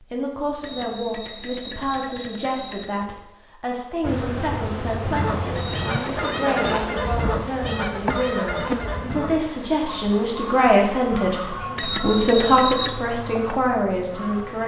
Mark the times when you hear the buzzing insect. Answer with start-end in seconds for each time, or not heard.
4.0-14.6.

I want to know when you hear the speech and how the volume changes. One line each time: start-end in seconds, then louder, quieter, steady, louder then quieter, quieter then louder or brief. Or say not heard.
0.0-14.6 louder.